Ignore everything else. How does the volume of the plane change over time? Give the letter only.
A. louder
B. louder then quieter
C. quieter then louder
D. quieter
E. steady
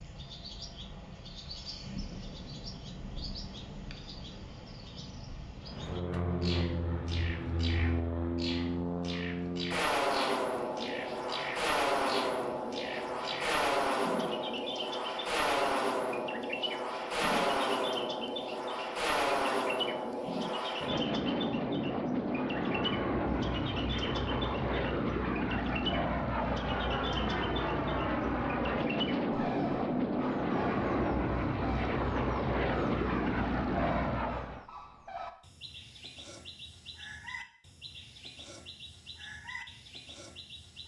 E.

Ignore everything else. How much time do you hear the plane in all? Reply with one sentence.
You can hear the plane for 29 seconds altogether.